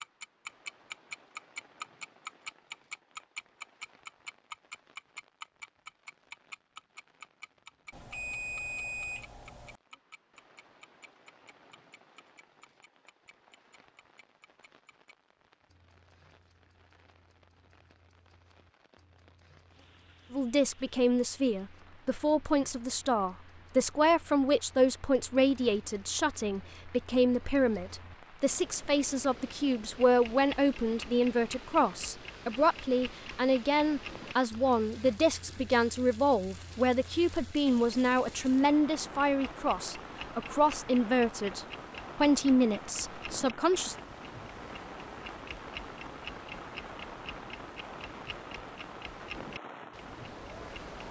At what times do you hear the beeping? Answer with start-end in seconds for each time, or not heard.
7.9-9.8.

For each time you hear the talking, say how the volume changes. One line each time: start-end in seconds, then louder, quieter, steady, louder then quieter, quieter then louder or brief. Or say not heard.
20.3-44.0 steady.